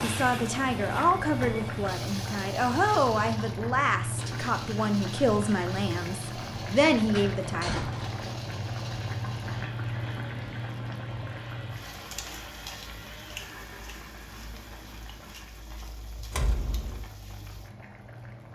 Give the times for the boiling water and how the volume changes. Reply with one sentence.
You can hear the boiling water from 0.0 to 18.5 s, getting quieter.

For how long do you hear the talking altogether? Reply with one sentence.
You can hear the talking for 8 seconds altogether.